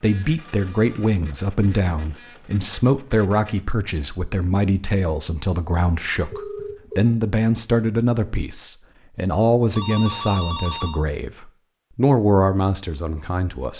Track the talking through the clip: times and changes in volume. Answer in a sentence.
The talking can be heard from 0.0 to 13.7 s, at a steady volume.